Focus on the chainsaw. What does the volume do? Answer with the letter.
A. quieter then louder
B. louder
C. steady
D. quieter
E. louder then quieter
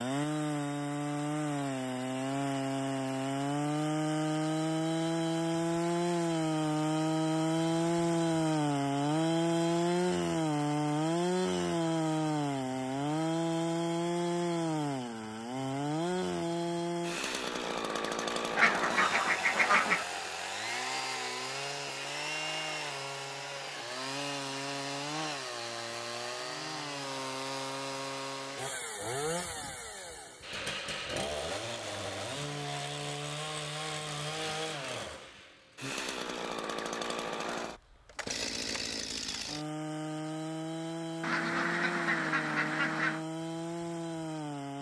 D.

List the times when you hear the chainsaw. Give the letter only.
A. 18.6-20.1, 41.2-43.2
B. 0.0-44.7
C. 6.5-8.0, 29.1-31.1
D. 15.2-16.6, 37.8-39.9
B.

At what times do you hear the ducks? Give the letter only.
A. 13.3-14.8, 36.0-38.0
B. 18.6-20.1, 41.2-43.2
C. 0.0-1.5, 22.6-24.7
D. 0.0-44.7
B.